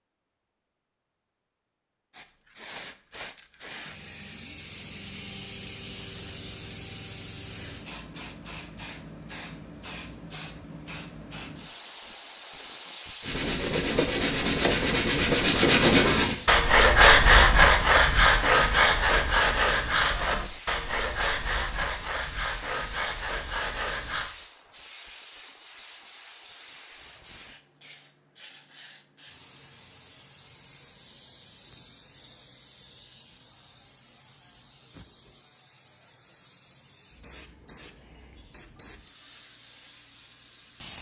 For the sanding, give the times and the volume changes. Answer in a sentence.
The sanding can be heard from 13.2 to 24.3 s, getting louder then quieter.